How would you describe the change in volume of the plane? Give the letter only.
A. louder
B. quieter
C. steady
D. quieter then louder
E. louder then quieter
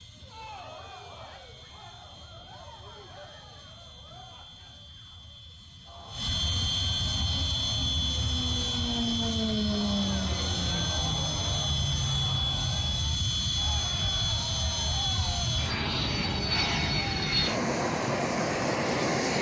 A.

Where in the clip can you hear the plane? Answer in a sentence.
You can hear the plane from 0.0 to 19.3 s.